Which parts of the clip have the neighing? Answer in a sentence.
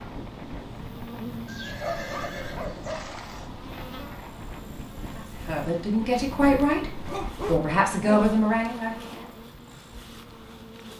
The neighing can be heard from 1.4 to 3.5 s.